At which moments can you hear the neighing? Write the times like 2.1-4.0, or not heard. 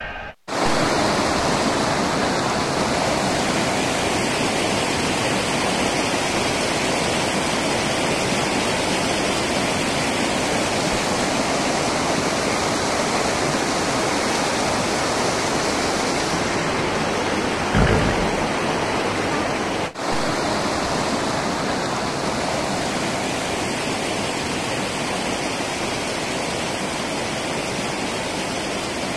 17.7-18.4.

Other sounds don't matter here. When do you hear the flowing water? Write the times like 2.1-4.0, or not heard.
0.0-29.1.